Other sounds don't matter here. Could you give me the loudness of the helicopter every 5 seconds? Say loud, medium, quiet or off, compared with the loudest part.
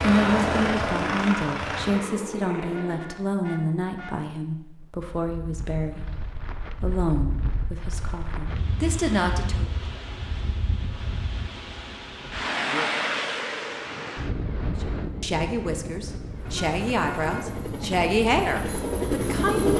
loud, off, off, loud.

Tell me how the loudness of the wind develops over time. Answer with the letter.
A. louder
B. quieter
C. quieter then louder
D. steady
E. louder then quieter
E.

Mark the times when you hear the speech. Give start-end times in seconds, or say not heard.
0.0-9.7, 14.8-19.7.